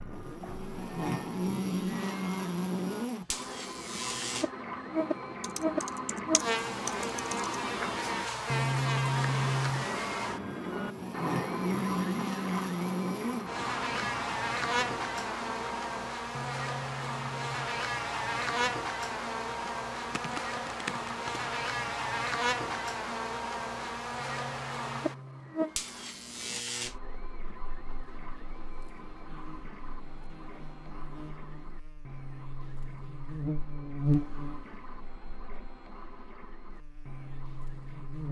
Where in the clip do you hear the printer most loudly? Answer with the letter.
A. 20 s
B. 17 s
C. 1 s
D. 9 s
D.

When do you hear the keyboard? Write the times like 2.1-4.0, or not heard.
5.4-7.5, 19.9-21.4.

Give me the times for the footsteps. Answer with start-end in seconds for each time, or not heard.
not heard.